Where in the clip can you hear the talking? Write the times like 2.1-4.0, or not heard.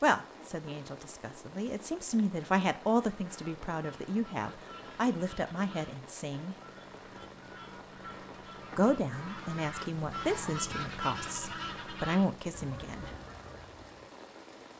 0.0-6.5, 8.8-13.1.